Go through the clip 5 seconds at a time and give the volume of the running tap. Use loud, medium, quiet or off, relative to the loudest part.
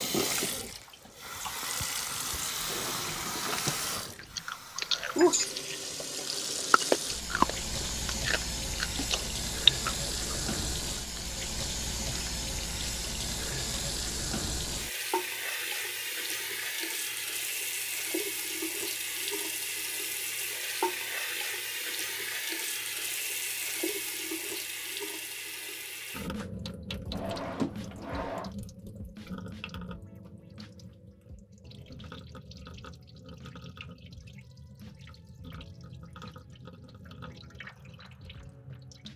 loud, loud, loud, loud, loud, medium, quiet, quiet.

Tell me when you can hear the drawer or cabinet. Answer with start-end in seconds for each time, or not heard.
2.6-3.8, 27.1-28.5.